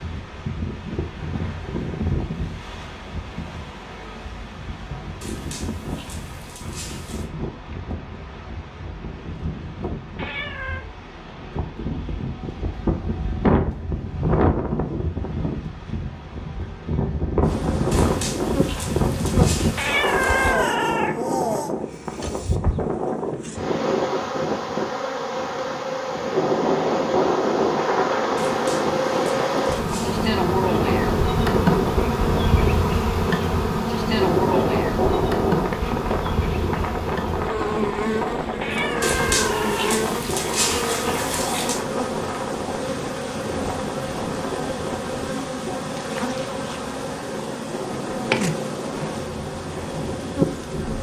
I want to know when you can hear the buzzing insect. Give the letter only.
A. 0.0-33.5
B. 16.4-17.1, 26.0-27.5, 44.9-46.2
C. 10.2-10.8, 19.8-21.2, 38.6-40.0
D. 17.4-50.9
D.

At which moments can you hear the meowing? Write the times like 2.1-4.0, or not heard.
10.2-10.8, 19.8-21.2, 38.6-40.0.